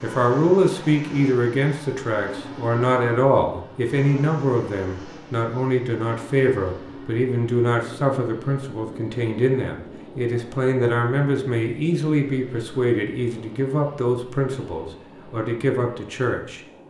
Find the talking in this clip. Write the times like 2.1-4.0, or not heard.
0.0-16.6.